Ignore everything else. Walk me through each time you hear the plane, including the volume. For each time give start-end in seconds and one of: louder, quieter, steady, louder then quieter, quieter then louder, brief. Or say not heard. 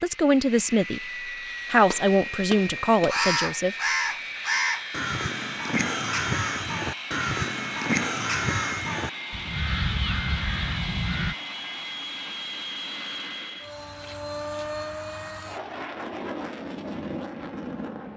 0.0-18.1 steady.